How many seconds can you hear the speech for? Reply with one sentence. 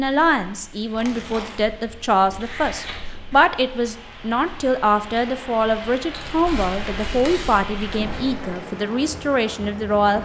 You can hear the speech for 10 seconds altogether.